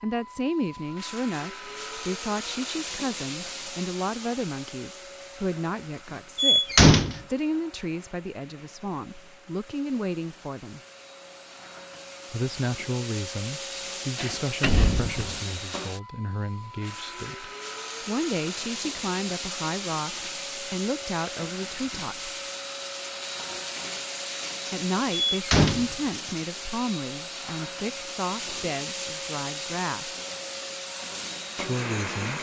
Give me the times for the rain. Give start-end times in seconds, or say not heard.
not heard.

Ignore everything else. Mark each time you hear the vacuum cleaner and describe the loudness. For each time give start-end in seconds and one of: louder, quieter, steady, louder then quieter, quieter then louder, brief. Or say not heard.
0.0-32.3 quieter then louder.